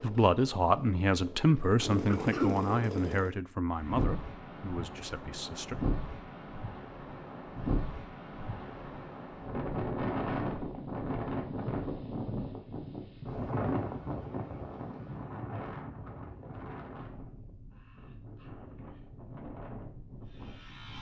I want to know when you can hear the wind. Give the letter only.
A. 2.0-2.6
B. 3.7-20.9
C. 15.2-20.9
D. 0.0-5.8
B.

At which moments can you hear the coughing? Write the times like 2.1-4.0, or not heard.
2.0-2.6.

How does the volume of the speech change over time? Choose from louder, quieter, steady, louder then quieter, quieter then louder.
quieter.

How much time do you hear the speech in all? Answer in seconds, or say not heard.
6 s.